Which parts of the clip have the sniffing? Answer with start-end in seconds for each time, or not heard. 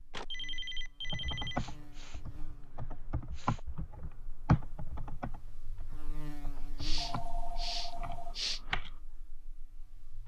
1.5-3.6, 6.8-8.6.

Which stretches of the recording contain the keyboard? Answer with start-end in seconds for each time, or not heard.
1.1-9.0.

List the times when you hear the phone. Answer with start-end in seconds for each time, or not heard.
0.1-1.6, 7.0-8.4.